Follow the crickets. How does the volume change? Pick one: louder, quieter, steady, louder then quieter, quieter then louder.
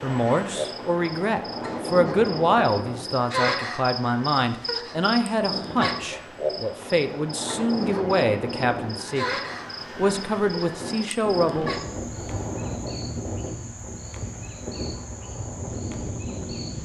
quieter.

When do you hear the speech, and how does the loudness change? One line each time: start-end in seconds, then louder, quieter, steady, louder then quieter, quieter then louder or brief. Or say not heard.
0.0-11.8 steady.